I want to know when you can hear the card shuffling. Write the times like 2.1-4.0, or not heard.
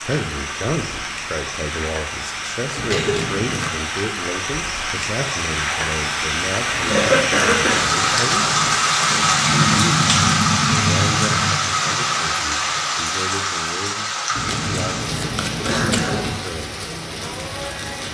2.8-3.7, 6.7-8.8, 14.3-16.4.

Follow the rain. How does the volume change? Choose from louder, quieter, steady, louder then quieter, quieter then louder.
louder then quieter.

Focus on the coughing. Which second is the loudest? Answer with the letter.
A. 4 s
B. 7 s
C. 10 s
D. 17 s
B.